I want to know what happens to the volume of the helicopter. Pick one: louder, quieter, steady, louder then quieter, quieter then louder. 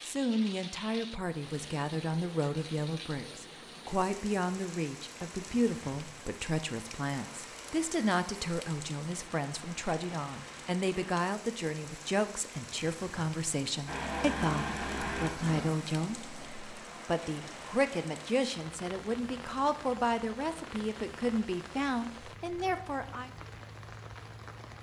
quieter.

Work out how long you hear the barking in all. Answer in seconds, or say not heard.
not heard.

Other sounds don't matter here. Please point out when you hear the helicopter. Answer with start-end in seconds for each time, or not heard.
13.8-18.4.